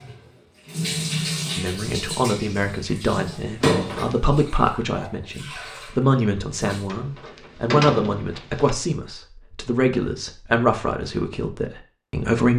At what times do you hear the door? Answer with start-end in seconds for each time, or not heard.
3.6-4.2, 6.8-8.7.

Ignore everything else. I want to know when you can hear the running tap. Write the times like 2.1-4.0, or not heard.
0.0-6.9.